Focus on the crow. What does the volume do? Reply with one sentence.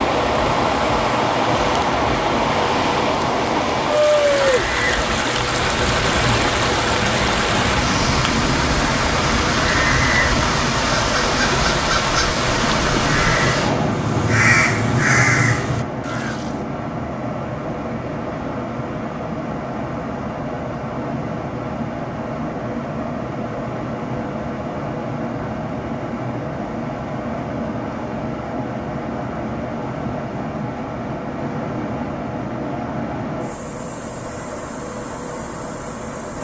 The volume of the crow goes up.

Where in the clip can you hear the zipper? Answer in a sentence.
The zipper can't be heard in this clip.